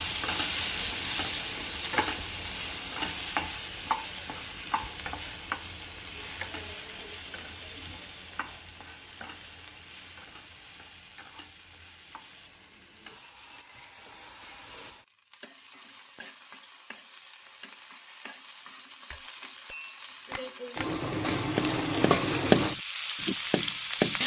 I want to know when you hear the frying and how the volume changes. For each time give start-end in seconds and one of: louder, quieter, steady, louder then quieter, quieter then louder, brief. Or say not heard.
0.0-24.2 quieter then louder.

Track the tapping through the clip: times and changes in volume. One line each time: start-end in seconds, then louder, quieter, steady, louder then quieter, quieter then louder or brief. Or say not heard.
19.1-24.2 louder then quieter.